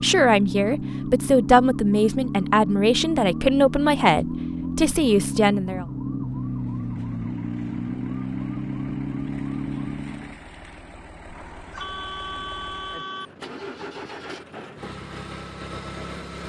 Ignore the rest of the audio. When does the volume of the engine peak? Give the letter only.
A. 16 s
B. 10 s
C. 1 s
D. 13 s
A.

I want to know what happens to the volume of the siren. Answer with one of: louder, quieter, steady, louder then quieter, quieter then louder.
steady.